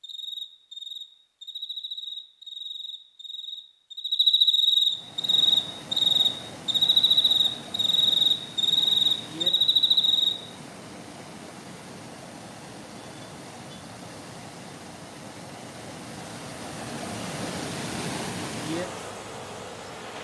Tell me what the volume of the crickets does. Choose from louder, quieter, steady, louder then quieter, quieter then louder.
louder.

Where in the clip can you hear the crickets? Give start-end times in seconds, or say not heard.
0.0-10.3.